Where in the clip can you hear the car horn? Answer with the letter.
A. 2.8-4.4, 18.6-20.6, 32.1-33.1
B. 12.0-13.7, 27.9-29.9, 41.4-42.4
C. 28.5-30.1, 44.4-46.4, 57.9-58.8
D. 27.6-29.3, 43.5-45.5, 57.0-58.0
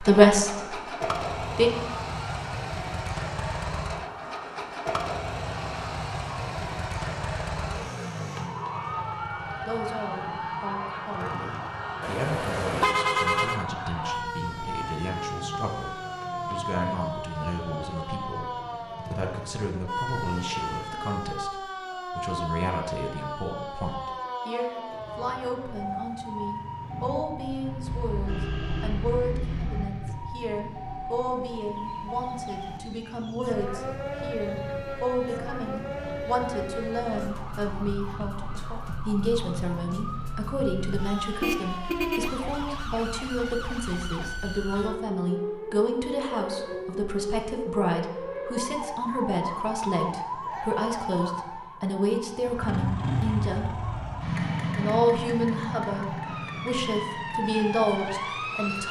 B.